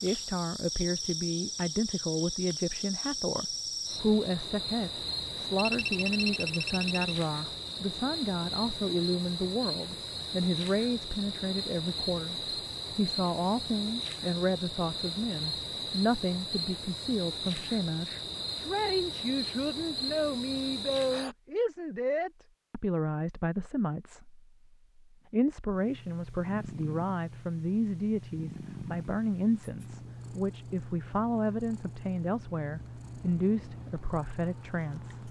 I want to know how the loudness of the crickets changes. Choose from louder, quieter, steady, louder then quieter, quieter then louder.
steady.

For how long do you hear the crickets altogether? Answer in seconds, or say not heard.
21 s.